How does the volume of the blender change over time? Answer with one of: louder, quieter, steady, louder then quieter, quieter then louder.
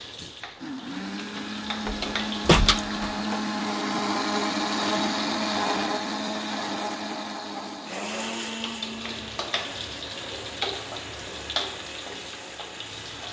louder then quieter.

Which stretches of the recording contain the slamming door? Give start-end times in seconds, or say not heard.
1.9-3.4.